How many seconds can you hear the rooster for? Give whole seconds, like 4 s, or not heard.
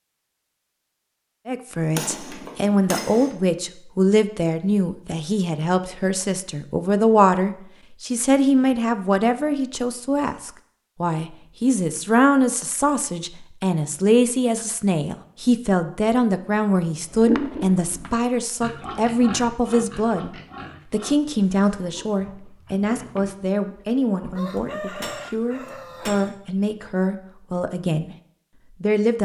2 s.